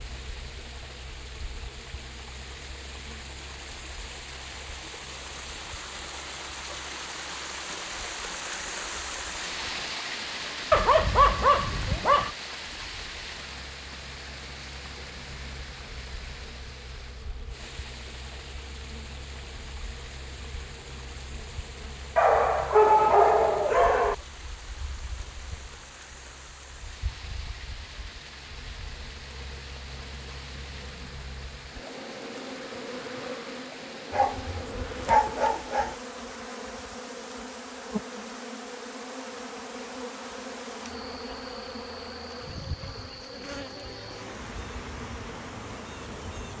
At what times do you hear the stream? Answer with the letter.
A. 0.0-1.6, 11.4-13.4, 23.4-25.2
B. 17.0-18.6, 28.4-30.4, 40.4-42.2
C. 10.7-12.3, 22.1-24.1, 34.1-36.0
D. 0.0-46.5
D.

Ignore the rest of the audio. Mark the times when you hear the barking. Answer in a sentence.
The barking can be heard from 10.7 to 12.3 s, from 22.1 to 24.1 s and from 34.1 to 36.0 s.